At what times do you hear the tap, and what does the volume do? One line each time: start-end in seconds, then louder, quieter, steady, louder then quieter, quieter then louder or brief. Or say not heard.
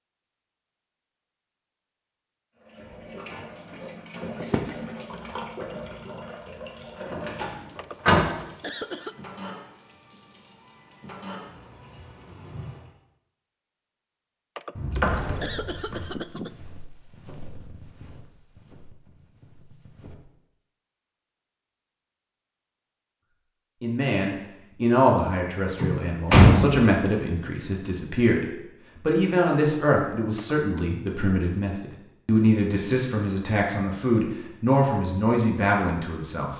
2.6-12.9 quieter.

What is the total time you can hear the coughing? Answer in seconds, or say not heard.
4 s.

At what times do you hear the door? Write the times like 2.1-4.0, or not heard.
7.0-8.2, 14.8-16.0, 25.8-26.8.